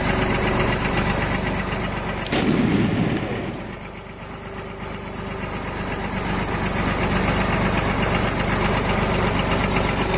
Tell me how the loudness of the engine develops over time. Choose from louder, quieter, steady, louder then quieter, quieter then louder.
quieter then louder.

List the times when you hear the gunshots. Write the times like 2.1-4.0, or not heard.
2.2-3.8.